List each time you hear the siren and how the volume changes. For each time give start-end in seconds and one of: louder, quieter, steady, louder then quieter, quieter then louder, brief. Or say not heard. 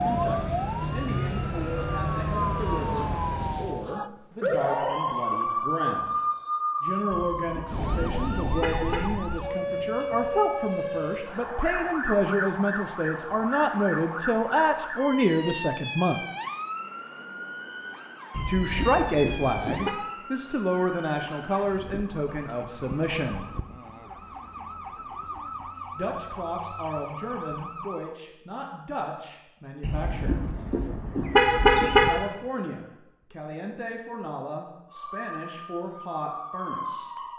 0.0-28.2 quieter
34.9-37.3 brief.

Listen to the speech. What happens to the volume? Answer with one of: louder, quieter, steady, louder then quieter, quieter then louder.
louder then quieter.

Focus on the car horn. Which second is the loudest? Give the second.
32 s.